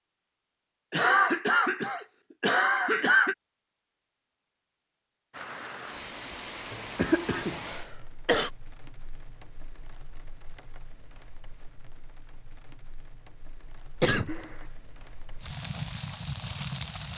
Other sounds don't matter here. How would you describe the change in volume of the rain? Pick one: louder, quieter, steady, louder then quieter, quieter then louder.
quieter then louder.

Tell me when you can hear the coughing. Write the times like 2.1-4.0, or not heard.
0.9-3.4, 6.7-8.5, 14.0-14.6.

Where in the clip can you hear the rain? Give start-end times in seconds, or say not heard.
5.3-17.1.